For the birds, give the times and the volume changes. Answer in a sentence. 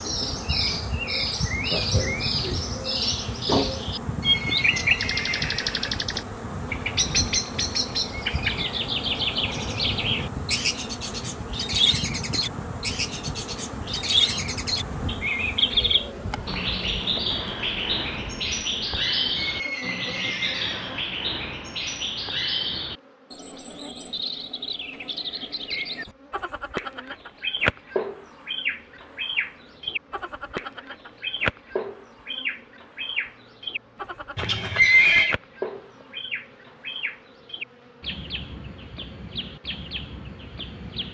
You can hear the birds from 0.0 to 41.0 s, getting quieter.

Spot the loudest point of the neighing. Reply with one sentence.
The loudest moment of the neighing is at 35 seconds.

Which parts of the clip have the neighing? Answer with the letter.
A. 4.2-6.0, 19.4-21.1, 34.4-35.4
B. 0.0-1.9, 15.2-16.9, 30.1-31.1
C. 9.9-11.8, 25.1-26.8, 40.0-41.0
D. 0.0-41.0
A.